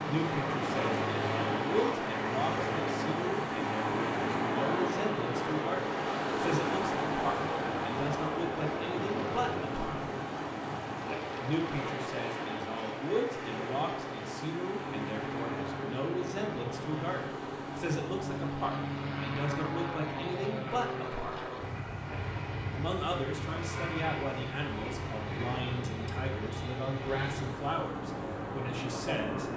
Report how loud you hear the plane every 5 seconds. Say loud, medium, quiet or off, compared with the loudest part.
loud, loud, medium, loud, loud, loud.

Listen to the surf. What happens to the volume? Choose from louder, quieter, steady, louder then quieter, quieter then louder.
quieter.